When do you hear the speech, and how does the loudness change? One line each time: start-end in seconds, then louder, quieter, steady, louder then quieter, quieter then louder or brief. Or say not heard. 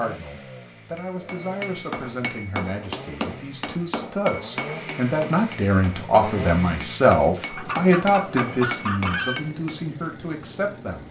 0.0-11.0 louder then quieter.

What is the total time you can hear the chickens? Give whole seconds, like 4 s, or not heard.
2 s.